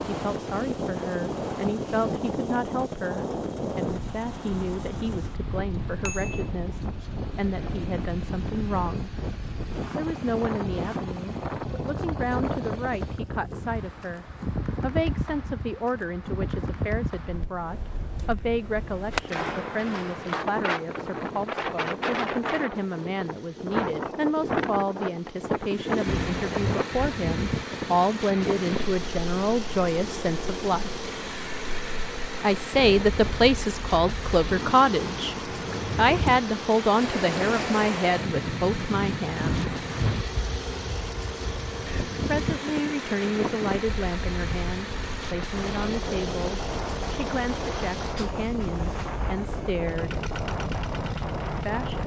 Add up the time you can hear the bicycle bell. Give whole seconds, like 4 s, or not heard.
3 s.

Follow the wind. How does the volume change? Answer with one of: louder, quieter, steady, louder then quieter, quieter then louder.
steady.